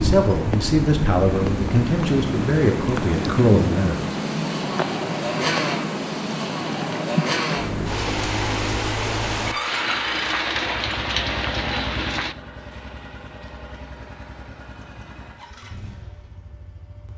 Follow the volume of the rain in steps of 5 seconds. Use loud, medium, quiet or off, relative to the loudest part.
loud, loud, loud, off.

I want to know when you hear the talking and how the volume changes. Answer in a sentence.
You can hear the talking from 0.0 to 4.2 s, at a steady volume.